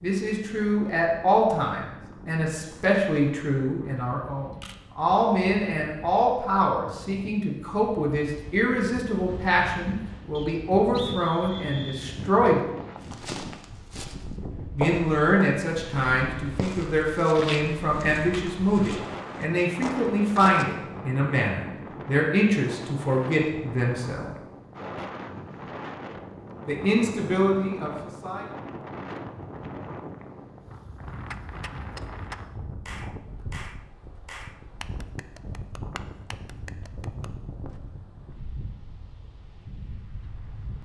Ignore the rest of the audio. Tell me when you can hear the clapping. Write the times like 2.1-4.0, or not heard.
31.3-37.3.